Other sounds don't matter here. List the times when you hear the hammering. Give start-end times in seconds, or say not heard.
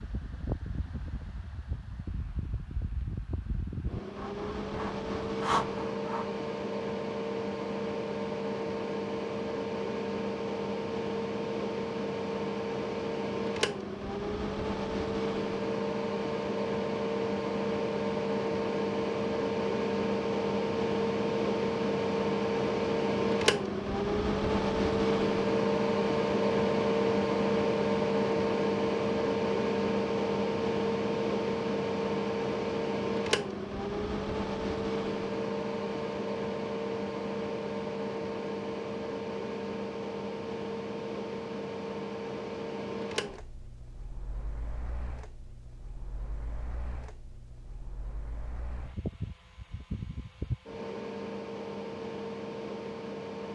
not heard.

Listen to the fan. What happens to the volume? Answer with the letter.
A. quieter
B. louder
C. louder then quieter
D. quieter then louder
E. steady
C.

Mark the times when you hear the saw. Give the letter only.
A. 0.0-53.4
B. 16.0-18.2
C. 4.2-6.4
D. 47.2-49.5
C.